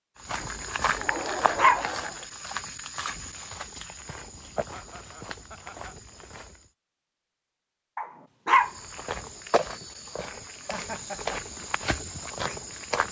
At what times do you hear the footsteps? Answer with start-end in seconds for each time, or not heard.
0.2-6.7, 8.6-13.0.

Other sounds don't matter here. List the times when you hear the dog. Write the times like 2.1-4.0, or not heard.
1.1-1.9, 8.0-8.7.